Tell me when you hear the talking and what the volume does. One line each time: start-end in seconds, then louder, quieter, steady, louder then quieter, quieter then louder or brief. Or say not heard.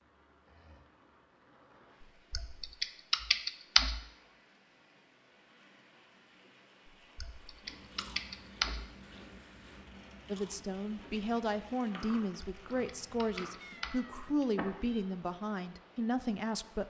10.2-16.8 steady.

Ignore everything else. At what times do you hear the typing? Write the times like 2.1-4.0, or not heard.
2.0-4.0, 6.8-8.8, 12.4-13.9.